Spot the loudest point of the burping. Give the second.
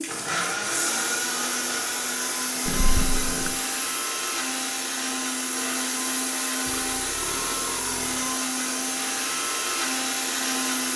3 s.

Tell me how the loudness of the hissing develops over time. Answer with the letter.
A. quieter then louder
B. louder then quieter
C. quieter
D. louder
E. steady
E.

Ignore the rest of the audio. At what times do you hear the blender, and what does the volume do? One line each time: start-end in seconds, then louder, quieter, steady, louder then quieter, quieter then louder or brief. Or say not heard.
0.0-10.9 steady.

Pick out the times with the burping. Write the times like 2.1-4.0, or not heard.
2.6-3.5, 6.7-8.4.